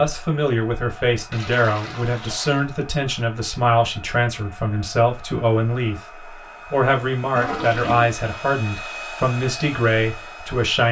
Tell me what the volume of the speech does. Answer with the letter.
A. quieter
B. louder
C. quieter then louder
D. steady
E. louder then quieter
D.